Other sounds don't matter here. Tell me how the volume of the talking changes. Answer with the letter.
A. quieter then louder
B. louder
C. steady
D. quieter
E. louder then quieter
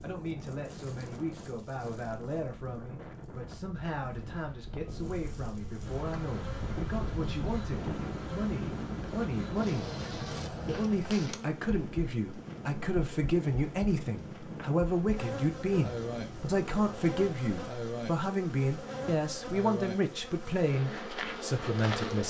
B.